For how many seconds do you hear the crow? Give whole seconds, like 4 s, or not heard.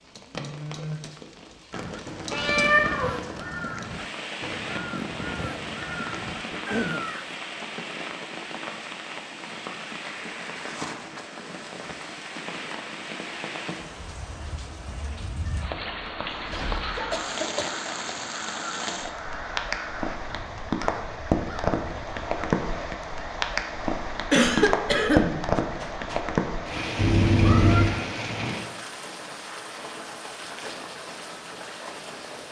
11 s.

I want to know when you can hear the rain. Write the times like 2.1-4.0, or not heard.
0.0-32.4.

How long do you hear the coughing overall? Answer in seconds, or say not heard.
3 s.